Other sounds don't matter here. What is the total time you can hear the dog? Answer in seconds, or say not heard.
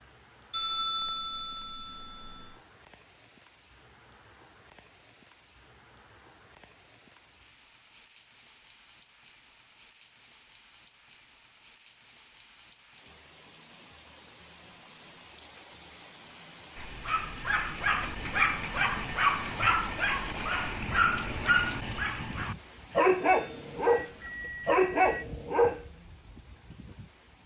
9 s.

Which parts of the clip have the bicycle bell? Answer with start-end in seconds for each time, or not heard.
0.5-2.5, 23.4-25.2.